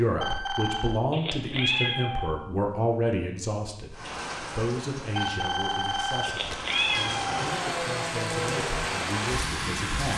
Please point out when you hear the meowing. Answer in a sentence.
The meowing can be heard from 1.1 to 2.4 s and from 6.2 to 7.5 s.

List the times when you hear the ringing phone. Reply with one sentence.
You can hear the ringing phone from 0.2 to 1.0 s and from 5.2 to 6.7 s.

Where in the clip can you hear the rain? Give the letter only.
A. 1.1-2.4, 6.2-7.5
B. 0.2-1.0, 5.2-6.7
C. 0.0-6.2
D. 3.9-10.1
D.